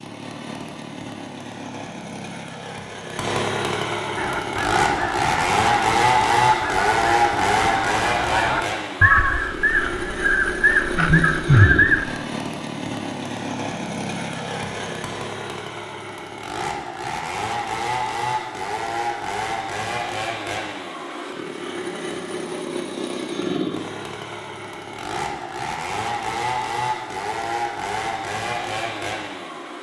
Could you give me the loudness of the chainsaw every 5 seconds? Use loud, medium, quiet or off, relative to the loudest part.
medium, loud, medium, medium, medium, medium.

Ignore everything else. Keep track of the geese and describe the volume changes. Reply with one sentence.
The volume of the geese goes up.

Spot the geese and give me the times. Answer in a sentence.
You can hear the geese from 4.2 to 12.2 s.